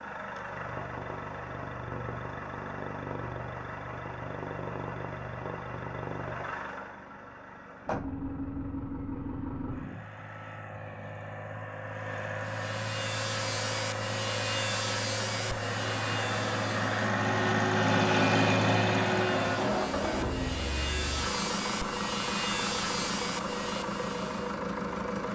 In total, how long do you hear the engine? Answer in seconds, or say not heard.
25 s.